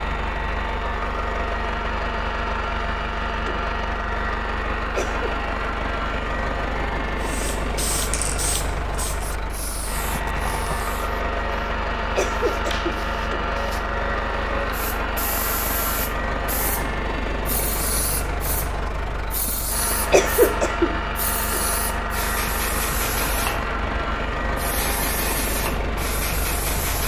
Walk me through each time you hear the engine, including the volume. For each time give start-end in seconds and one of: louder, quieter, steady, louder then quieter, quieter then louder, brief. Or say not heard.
0.0-27.0 steady.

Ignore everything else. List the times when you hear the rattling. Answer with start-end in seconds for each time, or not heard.
10.1-10.9.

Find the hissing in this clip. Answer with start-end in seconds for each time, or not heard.
7.2-27.0.